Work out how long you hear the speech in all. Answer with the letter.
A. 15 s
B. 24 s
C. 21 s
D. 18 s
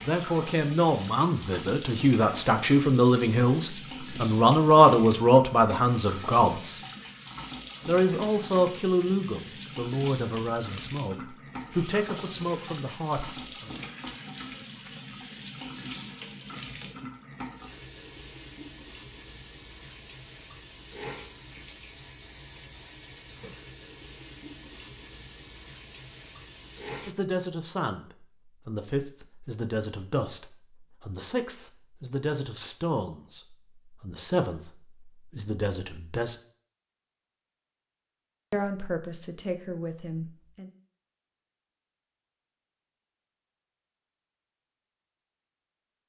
B.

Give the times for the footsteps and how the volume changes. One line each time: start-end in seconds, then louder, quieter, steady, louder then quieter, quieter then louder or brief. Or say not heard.
not heard.